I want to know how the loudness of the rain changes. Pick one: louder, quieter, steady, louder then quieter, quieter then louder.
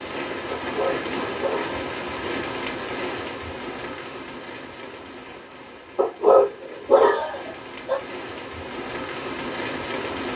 quieter then louder.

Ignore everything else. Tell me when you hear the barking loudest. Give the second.
6 s.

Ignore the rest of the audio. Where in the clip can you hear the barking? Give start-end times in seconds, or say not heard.
0.5-1.8, 6.0-8.0.